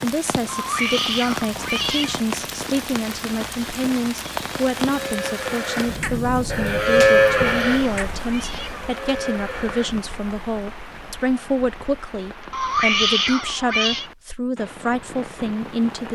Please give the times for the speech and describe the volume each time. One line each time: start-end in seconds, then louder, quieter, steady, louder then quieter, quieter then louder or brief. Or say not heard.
0.0-16.1 steady.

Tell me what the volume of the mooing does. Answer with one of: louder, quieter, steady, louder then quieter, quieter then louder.
louder then quieter.